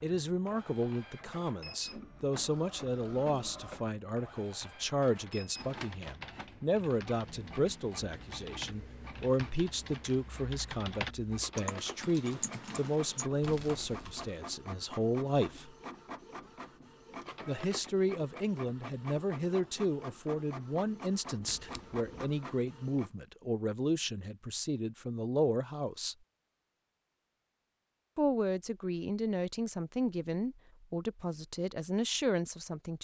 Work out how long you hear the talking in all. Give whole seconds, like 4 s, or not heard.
29 s.